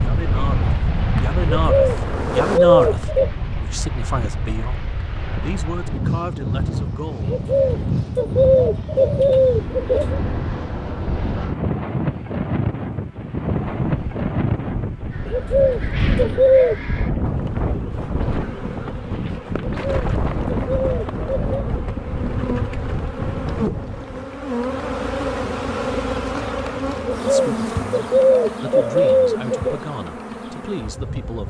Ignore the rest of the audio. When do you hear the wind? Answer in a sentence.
The wind can be heard from 0.0 to 24.3 s.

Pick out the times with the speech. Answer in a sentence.
The speech can be heard from 0.0 to 7.2 s and from 27.1 to 31.4 s.